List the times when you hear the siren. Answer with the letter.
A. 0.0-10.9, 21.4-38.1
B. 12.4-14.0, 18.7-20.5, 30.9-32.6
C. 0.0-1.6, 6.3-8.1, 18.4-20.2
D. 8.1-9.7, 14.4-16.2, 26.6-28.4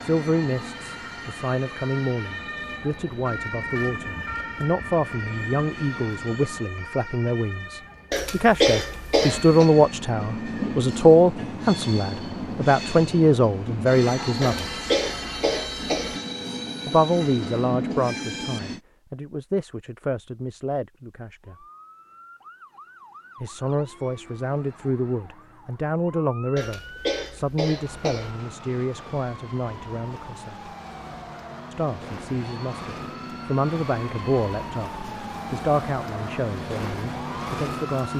A.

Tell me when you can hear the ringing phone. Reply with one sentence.
You can't hear the ringing phone here.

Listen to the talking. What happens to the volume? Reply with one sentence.
The volume of the talking goes up, then down.